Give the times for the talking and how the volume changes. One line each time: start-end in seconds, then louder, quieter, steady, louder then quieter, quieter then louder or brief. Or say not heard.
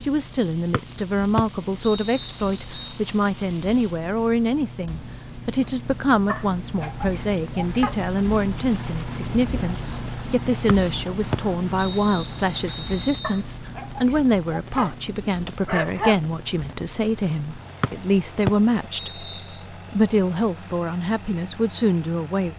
0.0-22.5 steady.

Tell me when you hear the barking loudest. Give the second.
16 s.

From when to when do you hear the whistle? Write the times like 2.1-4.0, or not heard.
0.7-3.0, 10.7-13.4, 17.8-19.6.